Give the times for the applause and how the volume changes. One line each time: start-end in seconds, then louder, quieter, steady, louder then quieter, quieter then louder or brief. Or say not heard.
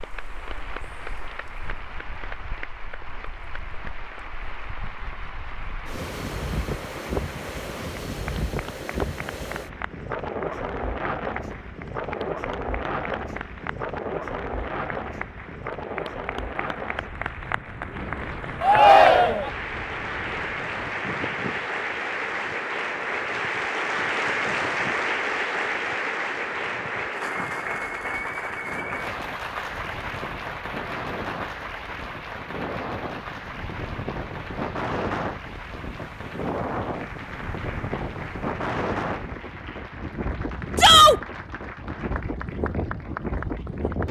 0.0-44.0 louder then quieter.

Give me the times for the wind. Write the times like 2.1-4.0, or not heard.
0.0-44.0.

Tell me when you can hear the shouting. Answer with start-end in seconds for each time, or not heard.
18.6-19.5, 40.8-41.2.